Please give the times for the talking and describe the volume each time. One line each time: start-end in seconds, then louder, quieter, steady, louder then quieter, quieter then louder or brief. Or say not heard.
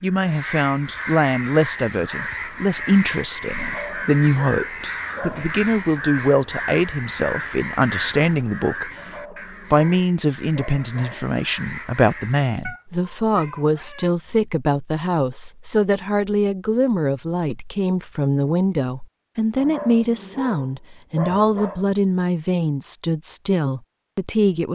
0.0-24.7 steady.